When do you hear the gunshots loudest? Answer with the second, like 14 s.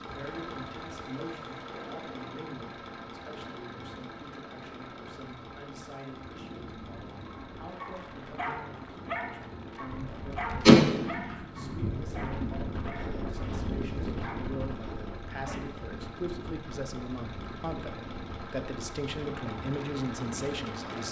11 s.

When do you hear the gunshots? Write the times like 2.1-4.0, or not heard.
9.8-12.6.